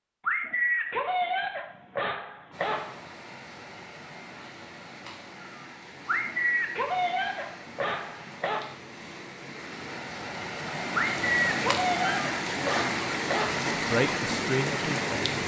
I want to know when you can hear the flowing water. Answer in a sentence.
You can hear the flowing water from 2.5 to 15.4 s.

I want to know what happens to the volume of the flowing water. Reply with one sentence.
The volume of the flowing water goes up.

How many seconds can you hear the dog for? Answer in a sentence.
You can hear the dog for 8 seconds altogether.